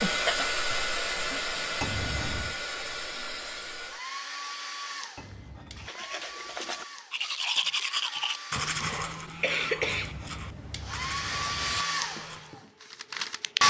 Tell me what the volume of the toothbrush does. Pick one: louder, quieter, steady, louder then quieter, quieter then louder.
louder then quieter.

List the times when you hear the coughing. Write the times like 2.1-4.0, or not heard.
8.6-10.2.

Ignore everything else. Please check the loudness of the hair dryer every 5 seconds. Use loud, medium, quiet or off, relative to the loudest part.
loud, quiet, loud.